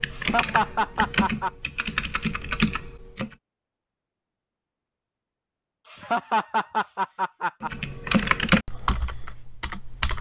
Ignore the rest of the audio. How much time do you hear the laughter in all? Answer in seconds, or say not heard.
3 s.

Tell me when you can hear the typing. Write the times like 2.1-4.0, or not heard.
0.0-3.4, 7.6-10.1.